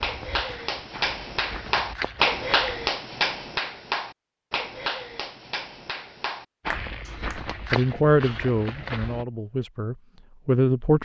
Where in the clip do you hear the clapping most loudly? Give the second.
2 s.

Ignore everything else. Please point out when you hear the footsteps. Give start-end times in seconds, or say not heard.
0.0-2.9, 6.7-9.2.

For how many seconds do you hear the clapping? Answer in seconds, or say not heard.
7 s.